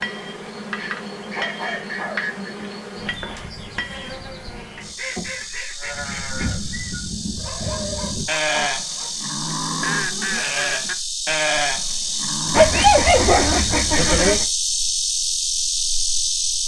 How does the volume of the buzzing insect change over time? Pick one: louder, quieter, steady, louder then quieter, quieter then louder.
louder.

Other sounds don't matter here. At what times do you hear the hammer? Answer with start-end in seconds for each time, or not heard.
0.0-4.1.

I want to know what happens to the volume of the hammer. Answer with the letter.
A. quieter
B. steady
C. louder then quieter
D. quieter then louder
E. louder
D.